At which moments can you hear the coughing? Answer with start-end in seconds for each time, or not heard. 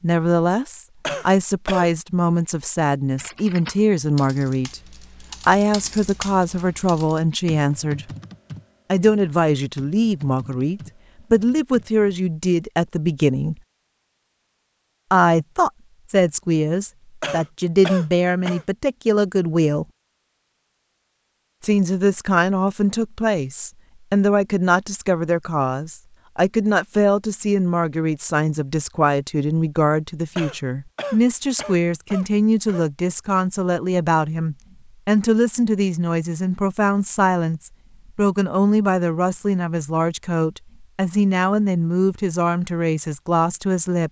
1.0-1.9, 17.2-18.6, 30.4-32.9.